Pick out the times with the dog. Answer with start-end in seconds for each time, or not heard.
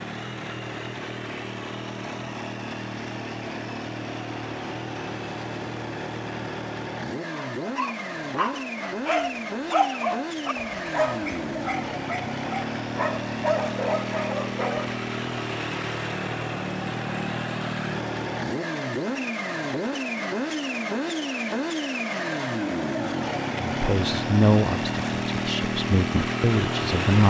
7.3-15.0.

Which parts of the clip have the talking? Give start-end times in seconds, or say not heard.
23.7-27.2.